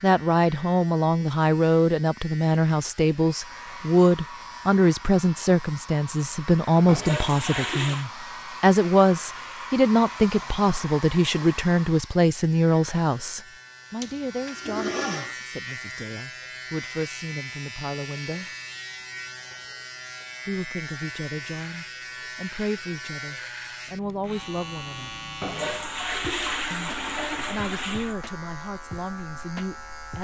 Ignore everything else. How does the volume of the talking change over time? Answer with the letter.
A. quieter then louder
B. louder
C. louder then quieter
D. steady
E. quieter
E.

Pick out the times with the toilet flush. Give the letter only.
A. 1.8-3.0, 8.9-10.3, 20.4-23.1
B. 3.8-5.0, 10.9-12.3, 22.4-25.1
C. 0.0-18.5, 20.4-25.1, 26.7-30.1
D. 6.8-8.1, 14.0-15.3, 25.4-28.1
D.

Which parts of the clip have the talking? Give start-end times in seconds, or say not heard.
0.0-18.5, 20.4-25.1, 26.7-30.1.